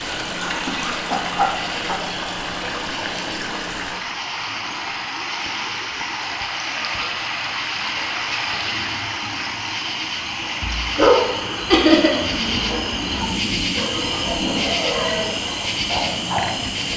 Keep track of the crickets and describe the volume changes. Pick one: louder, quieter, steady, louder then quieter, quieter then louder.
louder.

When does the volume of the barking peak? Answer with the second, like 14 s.
11 s.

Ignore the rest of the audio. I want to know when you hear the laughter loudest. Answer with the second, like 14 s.
12 s.